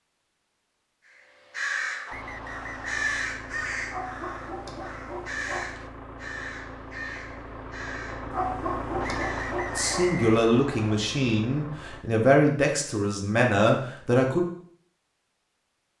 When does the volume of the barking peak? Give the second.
9 s.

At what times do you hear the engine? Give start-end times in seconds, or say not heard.
2.1-12.1.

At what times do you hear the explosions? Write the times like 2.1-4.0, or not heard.
not heard.